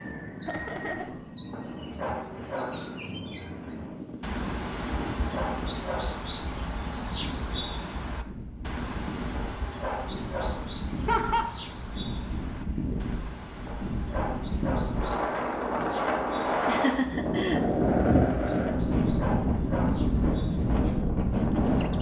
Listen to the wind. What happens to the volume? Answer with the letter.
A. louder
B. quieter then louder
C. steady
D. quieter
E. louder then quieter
A.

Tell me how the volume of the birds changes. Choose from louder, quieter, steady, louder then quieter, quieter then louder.
quieter.